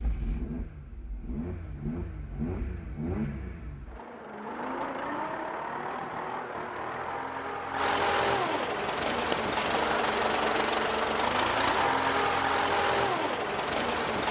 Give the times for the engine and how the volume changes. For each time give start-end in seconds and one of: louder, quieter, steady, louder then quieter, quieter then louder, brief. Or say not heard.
0.0-14.2 louder.